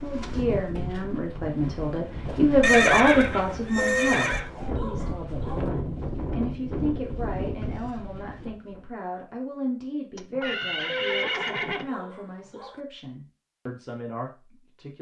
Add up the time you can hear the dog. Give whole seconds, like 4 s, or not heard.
4 s.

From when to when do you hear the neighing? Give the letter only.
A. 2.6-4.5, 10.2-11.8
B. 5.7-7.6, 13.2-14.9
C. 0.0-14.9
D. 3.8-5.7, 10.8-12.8
A.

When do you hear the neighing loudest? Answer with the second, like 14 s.
3 s.